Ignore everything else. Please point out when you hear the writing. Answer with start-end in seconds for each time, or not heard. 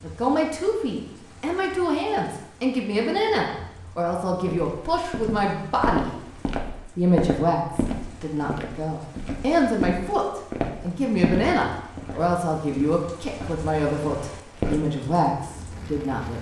not heard.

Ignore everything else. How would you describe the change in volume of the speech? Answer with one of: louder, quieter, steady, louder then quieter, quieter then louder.
steady.